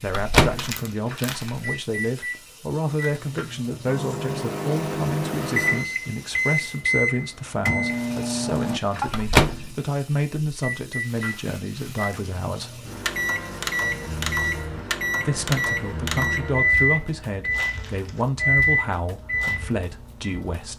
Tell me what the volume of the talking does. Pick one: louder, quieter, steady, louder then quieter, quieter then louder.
steady.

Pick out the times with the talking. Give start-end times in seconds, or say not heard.
0.0-12.8, 15.2-20.7.